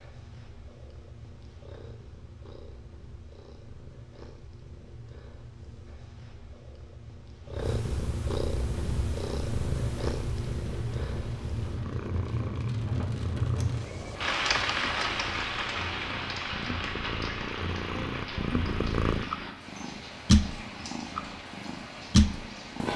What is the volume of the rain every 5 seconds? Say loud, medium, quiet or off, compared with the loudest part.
off, off, loud, loud, medium.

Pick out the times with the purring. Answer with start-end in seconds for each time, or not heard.
0.0-22.9.